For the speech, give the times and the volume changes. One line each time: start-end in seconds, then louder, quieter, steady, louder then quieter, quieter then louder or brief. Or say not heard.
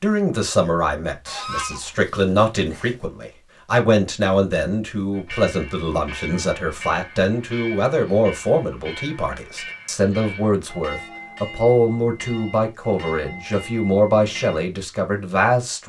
0.0-15.8 steady.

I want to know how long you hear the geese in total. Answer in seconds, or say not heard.
2 s.